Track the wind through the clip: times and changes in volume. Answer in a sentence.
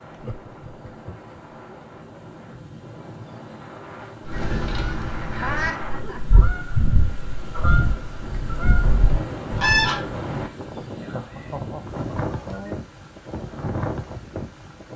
The wind can be heard from 0.0 to 14.9 s, getting louder.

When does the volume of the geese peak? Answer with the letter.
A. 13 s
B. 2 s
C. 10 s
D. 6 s
C.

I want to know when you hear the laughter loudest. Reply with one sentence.
The loudest moment of the laughter is at 6 seconds.